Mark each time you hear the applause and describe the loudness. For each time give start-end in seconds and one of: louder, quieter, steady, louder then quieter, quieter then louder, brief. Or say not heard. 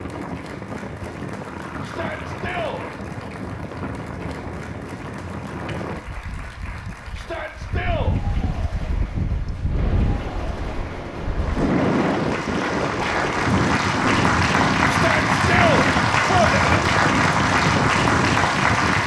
0.0-19.0 louder.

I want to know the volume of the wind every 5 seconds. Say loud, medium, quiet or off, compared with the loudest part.
medium, medium, loud, loud.